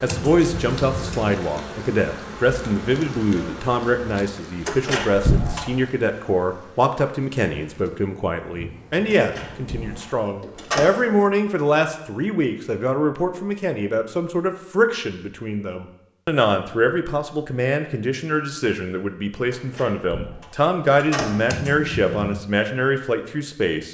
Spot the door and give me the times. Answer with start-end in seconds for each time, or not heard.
4.7-5.8, 9.1-10.9, 19.5-21.6.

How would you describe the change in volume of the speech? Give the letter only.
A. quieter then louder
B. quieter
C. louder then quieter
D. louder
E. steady
E.